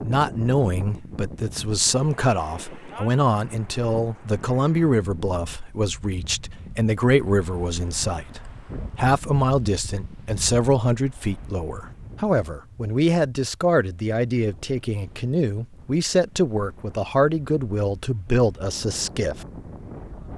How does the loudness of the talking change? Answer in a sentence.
The volume of the talking stays about the same.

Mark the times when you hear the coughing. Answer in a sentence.
You can't hear the coughing here.